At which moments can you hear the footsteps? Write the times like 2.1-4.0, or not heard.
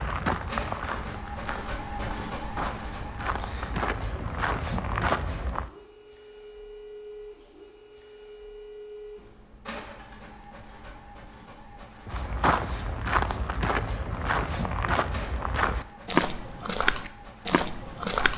0.0-5.7, 12.1-18.3.